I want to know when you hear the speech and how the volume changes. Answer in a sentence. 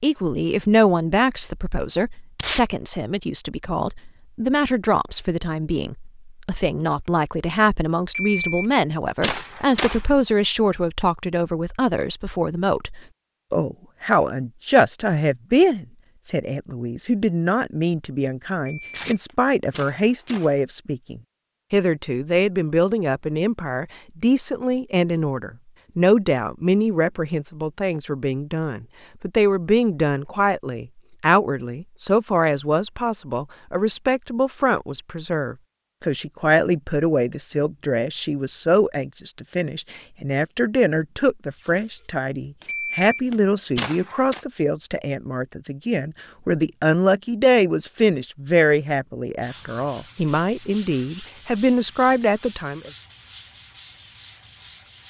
You can hear the speech from 0.0 to 52.9 s, at a steady volume.